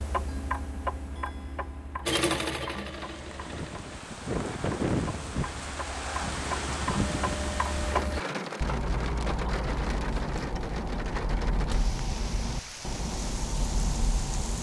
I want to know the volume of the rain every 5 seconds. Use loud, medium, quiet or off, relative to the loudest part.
loud, loud, medium.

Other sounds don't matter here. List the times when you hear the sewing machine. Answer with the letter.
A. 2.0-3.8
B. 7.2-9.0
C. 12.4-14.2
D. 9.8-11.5
A.